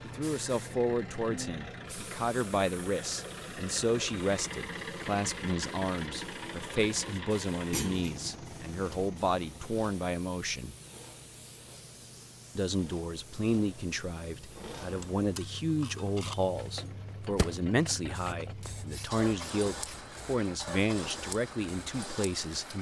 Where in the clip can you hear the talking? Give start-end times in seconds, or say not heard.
0.0-10.8, 12.6-22.7.